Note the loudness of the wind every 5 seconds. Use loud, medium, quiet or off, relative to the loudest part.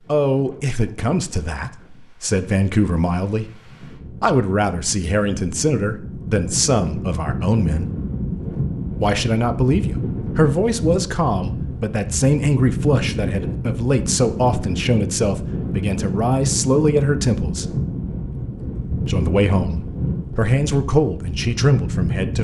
quiet, loud, loud, loud, loud.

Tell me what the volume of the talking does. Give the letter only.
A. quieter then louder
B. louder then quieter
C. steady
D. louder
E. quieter
C.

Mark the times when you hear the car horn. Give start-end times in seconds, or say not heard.
not heard.